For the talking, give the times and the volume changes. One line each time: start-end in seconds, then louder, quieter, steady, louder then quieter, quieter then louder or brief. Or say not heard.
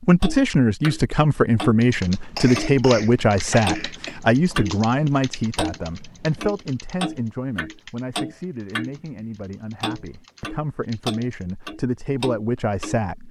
0.0-13.2 quieter then louder.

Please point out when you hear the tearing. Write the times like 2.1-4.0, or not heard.
not heard.